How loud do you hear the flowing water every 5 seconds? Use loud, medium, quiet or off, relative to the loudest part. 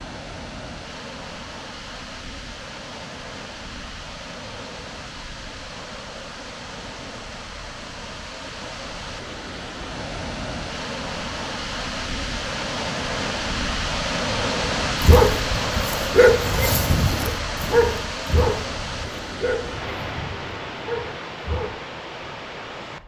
medium, medium, loud, loud, medium.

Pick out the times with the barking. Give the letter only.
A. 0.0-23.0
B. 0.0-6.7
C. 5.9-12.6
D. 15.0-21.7
D.